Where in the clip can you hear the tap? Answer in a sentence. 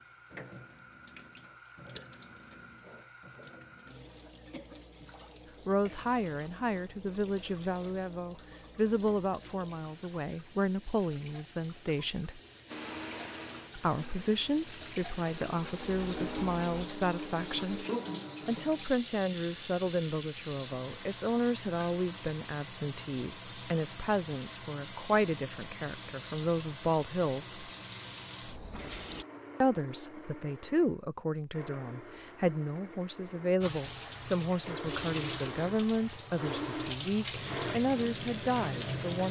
The tap can be heard from 0.0 to 29.2 s and from 33.6 to 39.2 s.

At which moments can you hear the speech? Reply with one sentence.
The speech can be heard from 5.7 to 12.4 s, from 13.8 to 17.9 s, from 18.4 to 27.6 s and from 29.6 to 39.2 s.